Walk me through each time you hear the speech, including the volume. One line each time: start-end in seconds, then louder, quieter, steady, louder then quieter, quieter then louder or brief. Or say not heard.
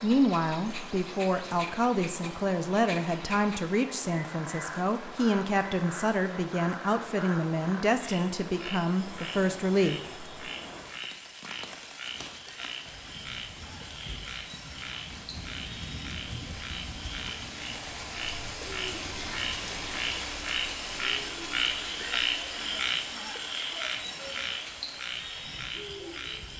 0.0-10.0 steady.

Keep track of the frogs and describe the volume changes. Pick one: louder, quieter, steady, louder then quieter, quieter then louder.
louder.